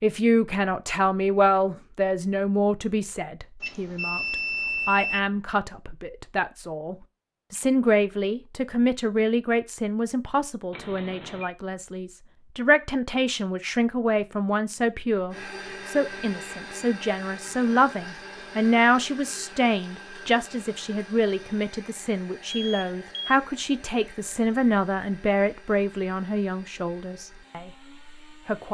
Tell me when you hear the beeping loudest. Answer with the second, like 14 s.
5 s.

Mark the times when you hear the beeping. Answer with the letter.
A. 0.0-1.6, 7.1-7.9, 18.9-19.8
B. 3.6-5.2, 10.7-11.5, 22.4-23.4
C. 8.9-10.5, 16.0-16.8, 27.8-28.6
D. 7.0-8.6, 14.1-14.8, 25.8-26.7
B.